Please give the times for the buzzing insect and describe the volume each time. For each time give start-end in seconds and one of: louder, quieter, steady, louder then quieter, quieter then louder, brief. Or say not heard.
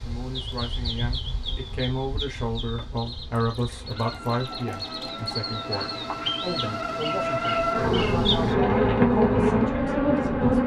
0.0-10.6 louder.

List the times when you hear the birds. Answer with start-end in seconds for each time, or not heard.
0.0-8.6.